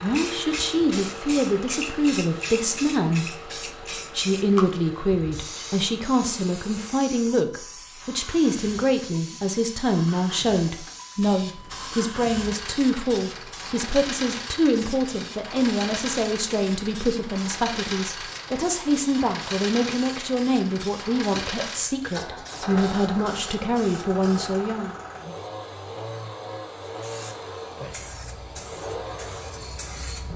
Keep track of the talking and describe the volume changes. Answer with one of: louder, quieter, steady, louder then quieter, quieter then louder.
steady.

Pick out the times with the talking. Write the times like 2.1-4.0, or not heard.
0.0-24.9.